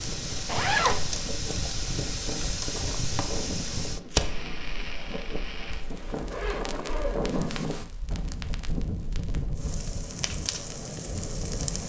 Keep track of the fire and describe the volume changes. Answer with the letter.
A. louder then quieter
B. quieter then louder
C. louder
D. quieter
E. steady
B.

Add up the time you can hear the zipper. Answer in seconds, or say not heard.
2 s.